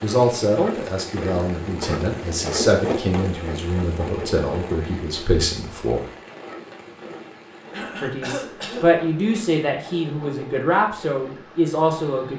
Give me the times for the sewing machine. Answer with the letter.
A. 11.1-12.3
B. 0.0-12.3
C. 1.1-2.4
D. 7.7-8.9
B.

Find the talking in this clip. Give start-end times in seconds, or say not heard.
0.0-6.0, 8.0-12.3.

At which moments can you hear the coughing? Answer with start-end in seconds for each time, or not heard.
7.7-8.9.